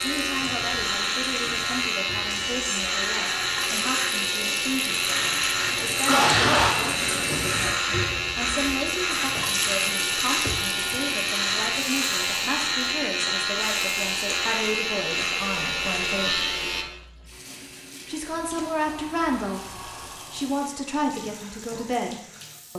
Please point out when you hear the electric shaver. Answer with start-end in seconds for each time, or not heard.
0.0-16.9.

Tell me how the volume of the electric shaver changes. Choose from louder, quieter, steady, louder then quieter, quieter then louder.
steady.